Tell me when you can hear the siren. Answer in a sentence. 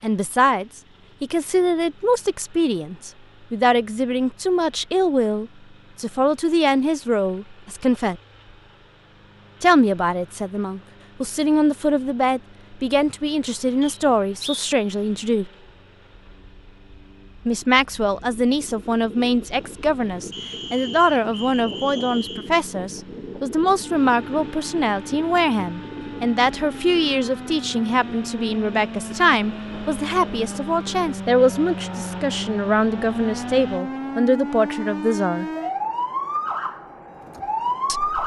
The siren can be heard from 23.8 to 38.2 s.